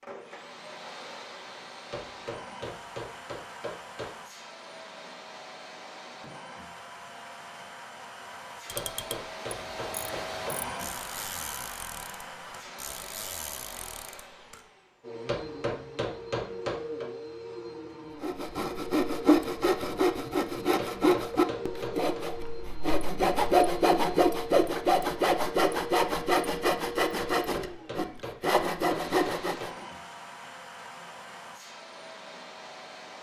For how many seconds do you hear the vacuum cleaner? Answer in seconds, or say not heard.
33 s.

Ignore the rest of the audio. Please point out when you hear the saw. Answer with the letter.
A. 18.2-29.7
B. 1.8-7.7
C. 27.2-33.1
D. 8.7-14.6
A.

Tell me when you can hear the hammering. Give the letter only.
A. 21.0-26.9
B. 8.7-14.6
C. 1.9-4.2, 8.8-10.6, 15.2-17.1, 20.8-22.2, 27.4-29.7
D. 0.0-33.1
C.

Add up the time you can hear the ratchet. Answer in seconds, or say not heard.
6 s.